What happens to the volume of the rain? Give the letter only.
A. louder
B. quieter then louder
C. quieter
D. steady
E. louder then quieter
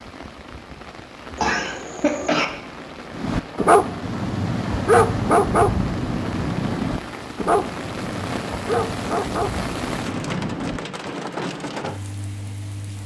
A.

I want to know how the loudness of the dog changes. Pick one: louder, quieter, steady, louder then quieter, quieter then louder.
quieter.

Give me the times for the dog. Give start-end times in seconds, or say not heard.
3.1-10.8.